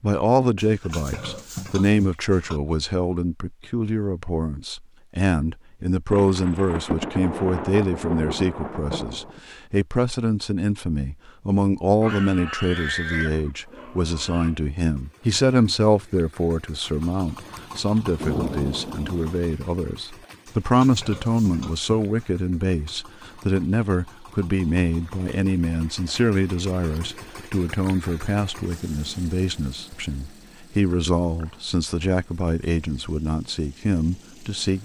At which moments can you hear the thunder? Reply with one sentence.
The thunder can be heard from 6.1 to 9.4 s and from 18.1 to 19.4 s.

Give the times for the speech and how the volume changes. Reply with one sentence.
You can hear the speech from 0.0 to 34.8 s, at a steady volume.